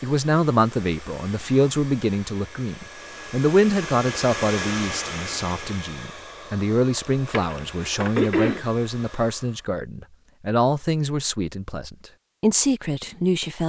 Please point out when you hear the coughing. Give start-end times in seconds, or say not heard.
7.0-8.7.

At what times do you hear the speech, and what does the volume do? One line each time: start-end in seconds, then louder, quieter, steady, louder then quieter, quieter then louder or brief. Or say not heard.
0.0-13.6 steady.